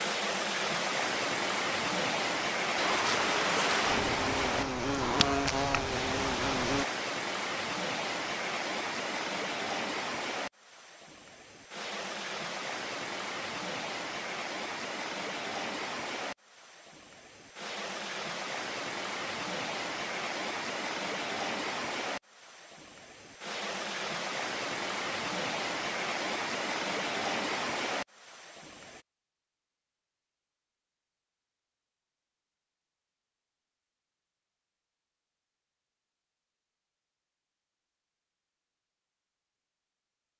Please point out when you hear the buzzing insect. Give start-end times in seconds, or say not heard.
2.8-6.8.